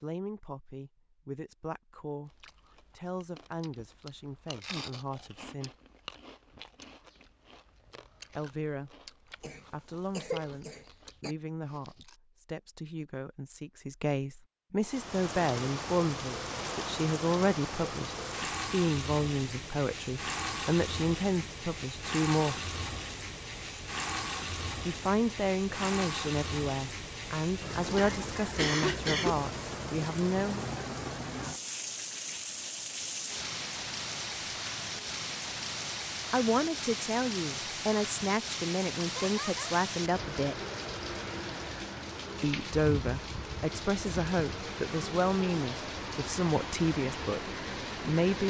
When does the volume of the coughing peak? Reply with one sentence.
The volume of the coughing peaks at 29 seconds.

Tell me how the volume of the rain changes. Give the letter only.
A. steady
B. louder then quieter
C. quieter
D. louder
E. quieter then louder
A.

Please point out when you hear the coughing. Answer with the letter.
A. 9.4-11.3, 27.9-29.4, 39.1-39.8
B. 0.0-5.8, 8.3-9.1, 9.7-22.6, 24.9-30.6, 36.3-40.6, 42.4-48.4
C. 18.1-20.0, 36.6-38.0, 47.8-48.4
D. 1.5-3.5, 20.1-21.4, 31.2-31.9
A.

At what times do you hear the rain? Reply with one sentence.
The rain can be heard from 14.8 to 48.4 s.